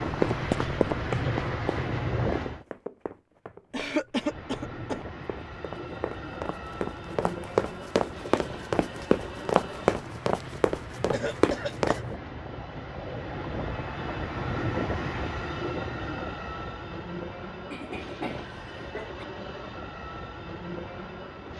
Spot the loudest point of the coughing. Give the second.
4 s.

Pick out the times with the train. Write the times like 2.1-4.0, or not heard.
0.0-2.6, 4.2-21.5.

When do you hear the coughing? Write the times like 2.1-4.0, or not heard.
3.7-5.0, 11.1-12.1, 17.7-19.2.